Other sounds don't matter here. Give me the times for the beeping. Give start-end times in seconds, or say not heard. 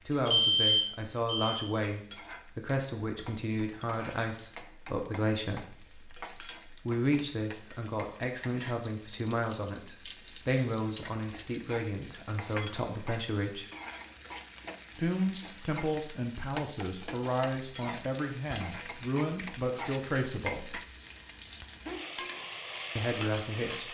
0.2-1.6.